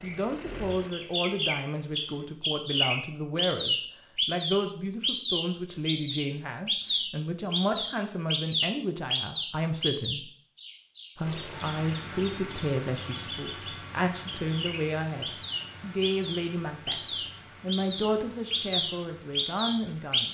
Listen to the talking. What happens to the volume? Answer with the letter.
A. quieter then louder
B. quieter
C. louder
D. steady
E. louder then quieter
D.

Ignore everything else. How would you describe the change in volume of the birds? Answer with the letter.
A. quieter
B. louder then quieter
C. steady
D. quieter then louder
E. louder
D.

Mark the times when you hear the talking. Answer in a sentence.
You can hear the talking from 0.0 to 10.3 s and from 11.2 to 20.2 s.